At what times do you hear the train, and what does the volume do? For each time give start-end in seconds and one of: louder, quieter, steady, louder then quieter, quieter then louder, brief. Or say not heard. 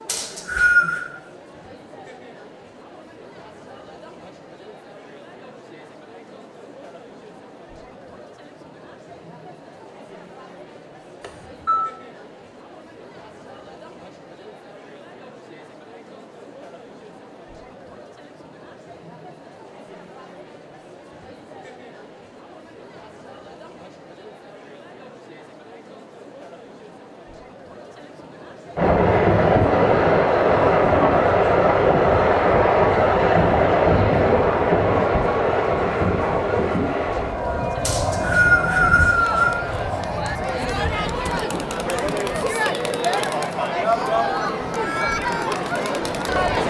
28.8-46.6 quieter.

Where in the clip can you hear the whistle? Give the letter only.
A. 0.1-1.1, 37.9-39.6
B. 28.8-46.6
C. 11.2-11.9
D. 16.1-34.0
A.